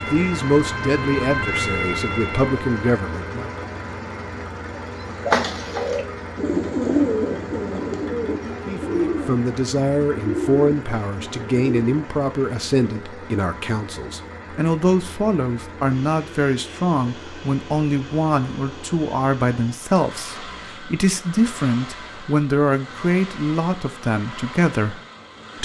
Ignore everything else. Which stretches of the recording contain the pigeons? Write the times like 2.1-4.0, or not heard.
4.8-11.9.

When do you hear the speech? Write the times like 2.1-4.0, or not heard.
0.0-3.5, 8.7-25.0.